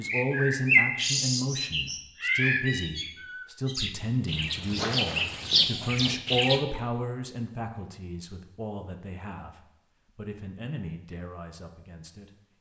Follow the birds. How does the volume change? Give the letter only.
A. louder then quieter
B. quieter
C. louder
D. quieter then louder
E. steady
D.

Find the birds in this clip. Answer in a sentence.
The birds can be heard from 0.0 to 6.6 s.